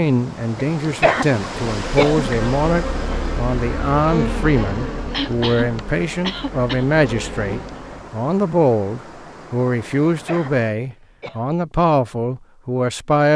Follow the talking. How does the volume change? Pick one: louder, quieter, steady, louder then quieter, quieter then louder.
steady.